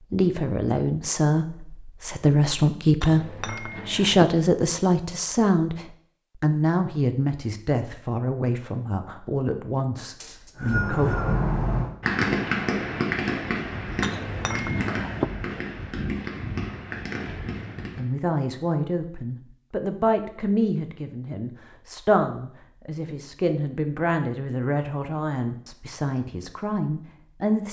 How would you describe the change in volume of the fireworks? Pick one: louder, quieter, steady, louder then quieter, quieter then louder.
quieter.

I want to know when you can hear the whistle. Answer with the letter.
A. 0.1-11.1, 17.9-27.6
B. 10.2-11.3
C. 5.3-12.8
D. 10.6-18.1
B.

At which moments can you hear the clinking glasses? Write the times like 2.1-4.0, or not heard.
3.0-4.2, 14.0-15.2.